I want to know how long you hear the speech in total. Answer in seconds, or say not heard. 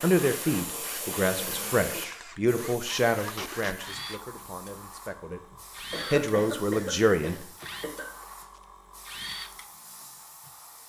7 s.